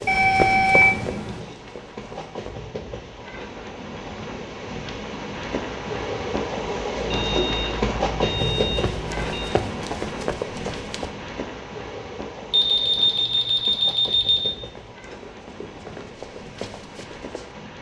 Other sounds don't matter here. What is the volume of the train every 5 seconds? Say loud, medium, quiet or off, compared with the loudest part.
medium, loud, medium, quiet.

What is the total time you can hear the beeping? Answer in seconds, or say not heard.
6 s.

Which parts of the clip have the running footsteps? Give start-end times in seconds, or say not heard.
0.0-2.5, 8.3-11.1, 14.2-17.6.